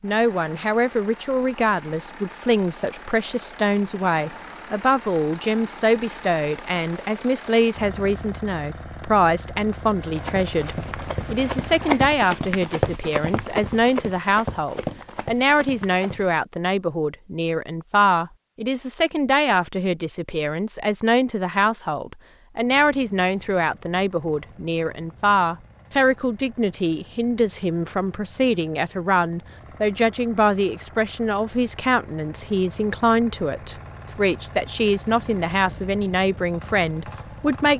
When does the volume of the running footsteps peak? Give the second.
12 s.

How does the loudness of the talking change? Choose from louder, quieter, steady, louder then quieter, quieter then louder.
steady.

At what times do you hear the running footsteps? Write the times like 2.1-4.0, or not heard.
10.1-16.4.